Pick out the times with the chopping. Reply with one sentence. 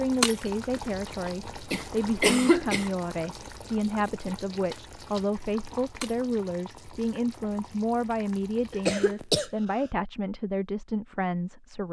You can't hear the chopping here.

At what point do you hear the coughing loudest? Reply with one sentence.
The loudest moment of the coughing is at 2 seconds.